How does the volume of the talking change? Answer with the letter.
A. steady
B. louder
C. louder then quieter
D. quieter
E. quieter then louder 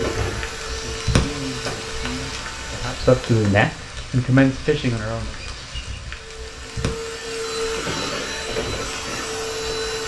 B.